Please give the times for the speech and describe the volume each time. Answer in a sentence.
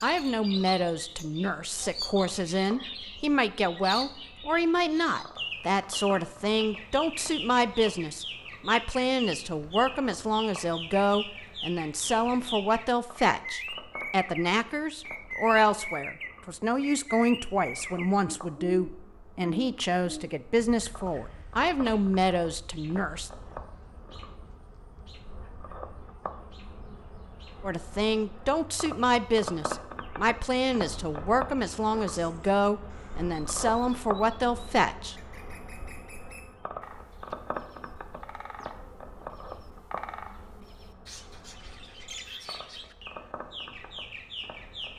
You can hear the speech from 0.0 to 23.3 s, at a steady volume; and from 27.6 to 35.3 s, at a steady volume.